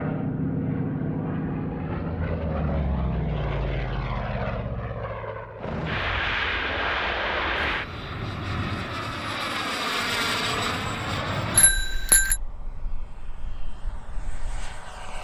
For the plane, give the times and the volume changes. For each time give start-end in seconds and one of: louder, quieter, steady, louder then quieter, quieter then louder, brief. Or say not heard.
0.0-15.1 quieter.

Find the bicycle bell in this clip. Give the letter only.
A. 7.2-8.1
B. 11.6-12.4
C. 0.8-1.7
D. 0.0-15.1
B.